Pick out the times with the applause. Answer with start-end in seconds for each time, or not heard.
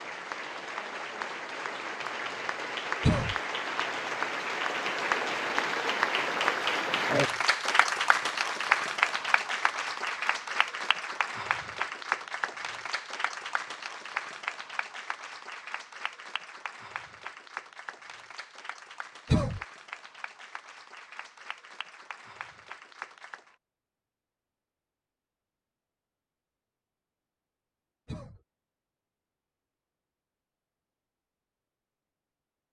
0.0-23.6.